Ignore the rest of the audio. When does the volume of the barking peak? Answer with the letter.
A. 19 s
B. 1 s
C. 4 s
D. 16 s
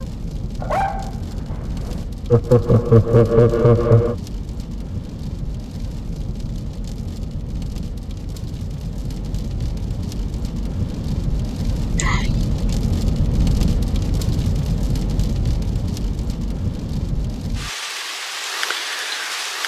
B.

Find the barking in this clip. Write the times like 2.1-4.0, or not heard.
0.6-2.0.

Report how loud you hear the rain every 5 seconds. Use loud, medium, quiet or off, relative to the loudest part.
medium, medium, loud, loud.